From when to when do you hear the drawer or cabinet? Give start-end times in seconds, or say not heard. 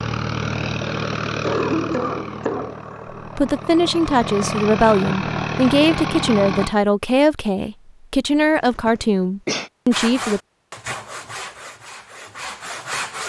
not heard.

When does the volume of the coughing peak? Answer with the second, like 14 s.
2 s.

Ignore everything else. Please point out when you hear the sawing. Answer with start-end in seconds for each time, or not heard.
9.9-13.2.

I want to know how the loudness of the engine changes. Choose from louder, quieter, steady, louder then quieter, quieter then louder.
quieter then louder.